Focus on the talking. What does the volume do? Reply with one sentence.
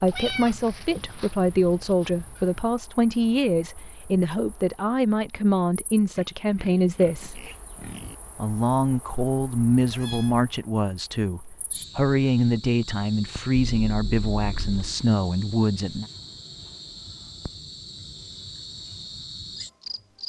The loudness of the talking stays about the same.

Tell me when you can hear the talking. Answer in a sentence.
The talking can be heard from 0.0 to 7.4 s and from 8.3 to 16.1 s.